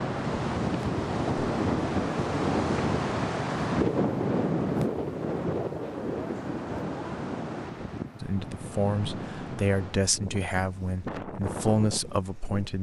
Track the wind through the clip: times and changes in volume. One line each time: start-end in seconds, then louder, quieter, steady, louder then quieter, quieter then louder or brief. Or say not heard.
0.0-12.7 quieter.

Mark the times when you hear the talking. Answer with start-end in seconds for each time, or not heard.
8.2-12.7.